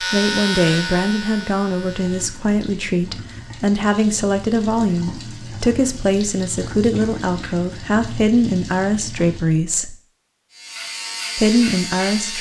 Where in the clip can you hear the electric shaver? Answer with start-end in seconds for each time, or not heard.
0.0-2.3, 10.5-12.3.